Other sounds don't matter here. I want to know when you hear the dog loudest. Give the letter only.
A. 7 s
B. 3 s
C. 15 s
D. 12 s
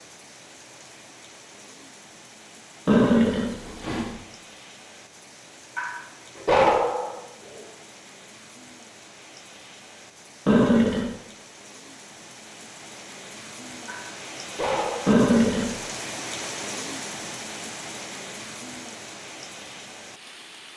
A.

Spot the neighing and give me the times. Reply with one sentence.
You can hear the neighing from 2.9 to 4.1 s, from 10.4 to 11.1 s and from 15.1 to 15.7 s.